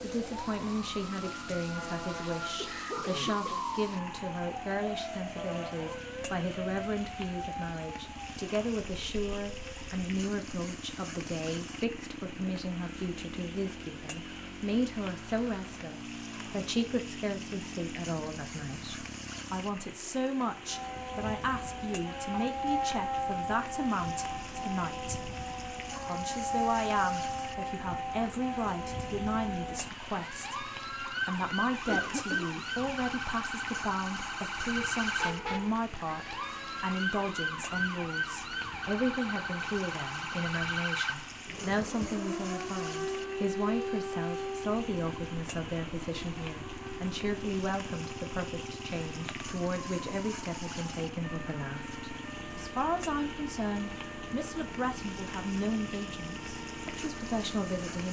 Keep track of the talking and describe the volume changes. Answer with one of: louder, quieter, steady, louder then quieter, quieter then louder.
steady.